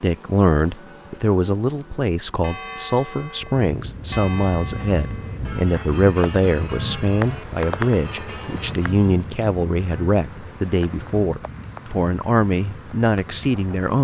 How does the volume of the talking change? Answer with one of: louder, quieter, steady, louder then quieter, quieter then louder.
steady.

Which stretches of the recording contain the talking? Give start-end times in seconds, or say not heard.
0.0-13.9.